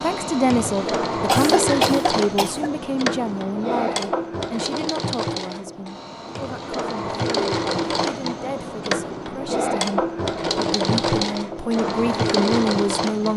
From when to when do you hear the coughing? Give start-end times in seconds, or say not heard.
1.2-2.7.